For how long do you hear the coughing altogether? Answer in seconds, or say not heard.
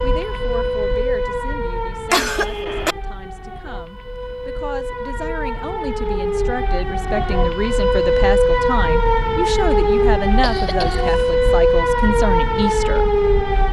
2 s.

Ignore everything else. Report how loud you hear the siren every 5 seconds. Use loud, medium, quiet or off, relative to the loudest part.
medium, loud, loud.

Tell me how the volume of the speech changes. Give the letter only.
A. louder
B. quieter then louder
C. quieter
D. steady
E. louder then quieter
A.